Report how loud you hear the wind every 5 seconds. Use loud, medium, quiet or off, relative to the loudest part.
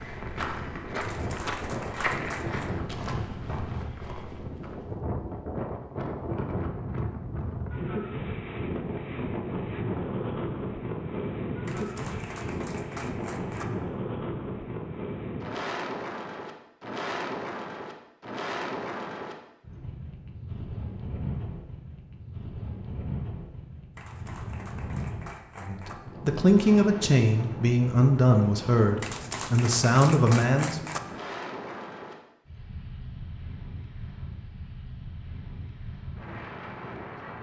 loud, loud, loud, loud, medium, medium, medium, medium.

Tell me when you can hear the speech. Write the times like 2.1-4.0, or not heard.
25.6-30.8.